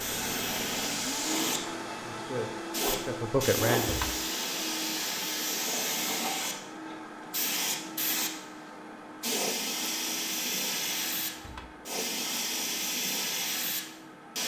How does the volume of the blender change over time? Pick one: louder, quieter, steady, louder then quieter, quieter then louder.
quieter.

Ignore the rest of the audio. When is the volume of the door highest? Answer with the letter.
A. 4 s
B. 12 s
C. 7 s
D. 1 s
A.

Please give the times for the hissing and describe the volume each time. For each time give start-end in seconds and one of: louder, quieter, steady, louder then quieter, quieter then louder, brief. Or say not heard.
0.0-14.4 steady.